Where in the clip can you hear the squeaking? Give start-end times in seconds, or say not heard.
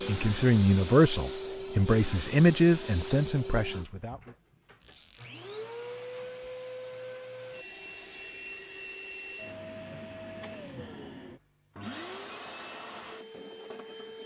4.8-5.3.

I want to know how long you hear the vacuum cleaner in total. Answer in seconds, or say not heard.
14 s.